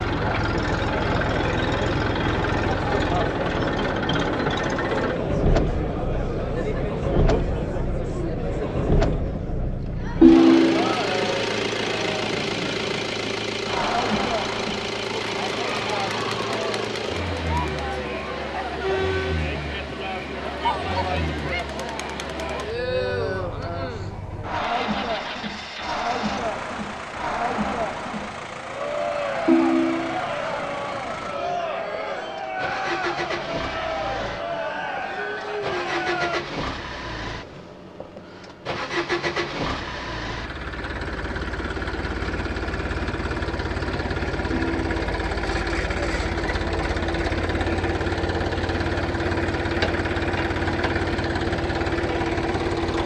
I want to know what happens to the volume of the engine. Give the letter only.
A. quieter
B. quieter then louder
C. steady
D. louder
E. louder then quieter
B.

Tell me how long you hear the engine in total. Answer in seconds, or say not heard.
53 s.